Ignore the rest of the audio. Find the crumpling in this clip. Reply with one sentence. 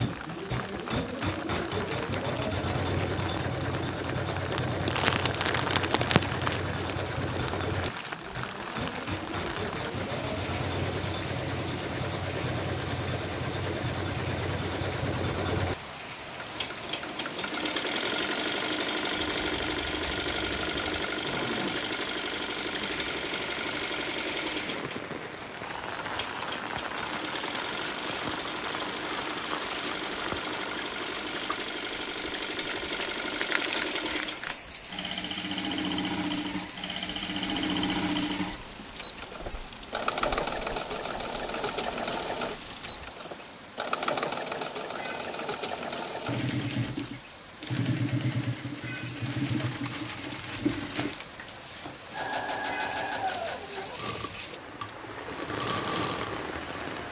The crumpling can be heard from 4.5 to 6.6 s, from 32.7 to 34.5 s and from 49.2 to 51.2 s.